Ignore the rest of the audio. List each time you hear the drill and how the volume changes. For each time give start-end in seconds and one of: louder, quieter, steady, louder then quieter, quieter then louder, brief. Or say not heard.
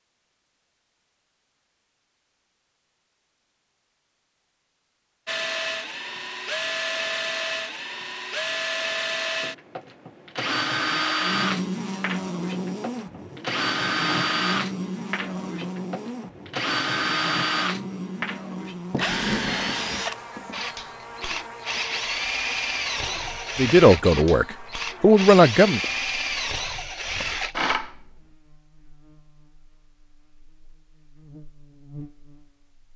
5.2-28.1 steady.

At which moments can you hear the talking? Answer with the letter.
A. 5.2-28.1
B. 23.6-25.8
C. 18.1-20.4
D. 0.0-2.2
B.